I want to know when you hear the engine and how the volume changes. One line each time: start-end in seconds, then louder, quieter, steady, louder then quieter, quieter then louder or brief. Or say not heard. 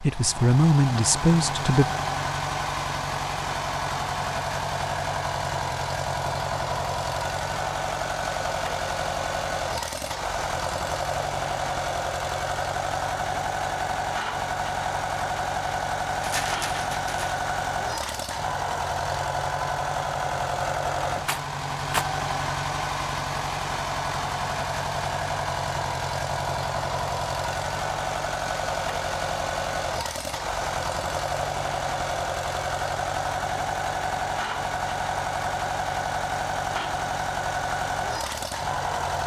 0.0-39.2 steady.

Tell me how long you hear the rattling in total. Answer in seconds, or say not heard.
2 s.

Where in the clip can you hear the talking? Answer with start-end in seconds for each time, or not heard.
0.0-1.9.